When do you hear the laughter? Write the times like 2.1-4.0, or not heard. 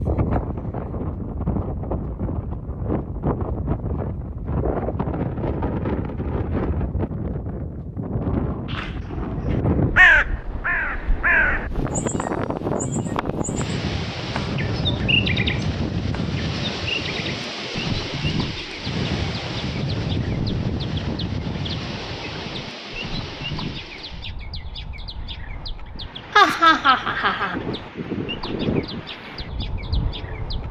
26.4-27.6.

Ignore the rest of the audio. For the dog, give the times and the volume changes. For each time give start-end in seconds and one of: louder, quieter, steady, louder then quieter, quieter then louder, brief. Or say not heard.
not heard.